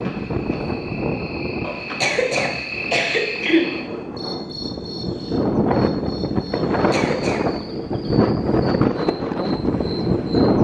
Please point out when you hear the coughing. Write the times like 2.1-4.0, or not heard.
1.6-3.7, 6.7-7.4.